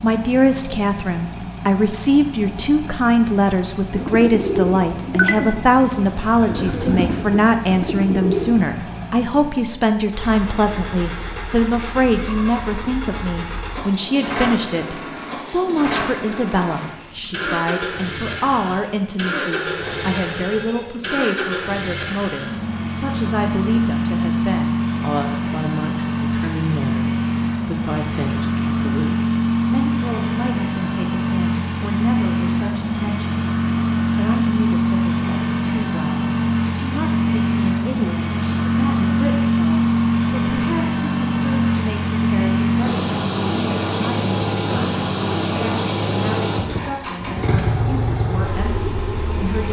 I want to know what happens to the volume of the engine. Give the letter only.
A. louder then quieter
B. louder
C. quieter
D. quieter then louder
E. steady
B.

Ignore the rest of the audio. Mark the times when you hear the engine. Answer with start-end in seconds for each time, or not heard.
0.0-49.6.